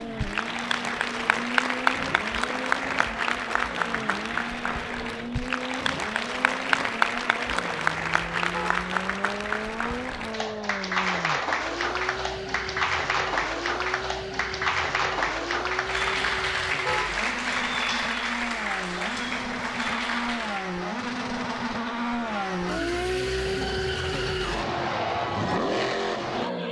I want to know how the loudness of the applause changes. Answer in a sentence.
The loudness of the applause stays about the same.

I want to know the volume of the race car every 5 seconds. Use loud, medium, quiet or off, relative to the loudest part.
medium, medium, medium, medium, loud, loud.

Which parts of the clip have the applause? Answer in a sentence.
The applause can be heard from 0.0 to 20.8 s.